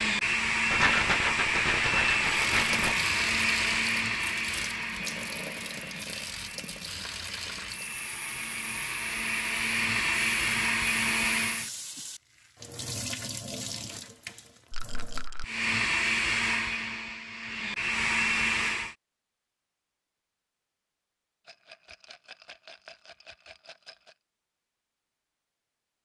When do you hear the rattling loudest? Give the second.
1 s.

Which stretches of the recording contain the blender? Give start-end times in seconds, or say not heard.
0.0-11.7, 15.4-18.9.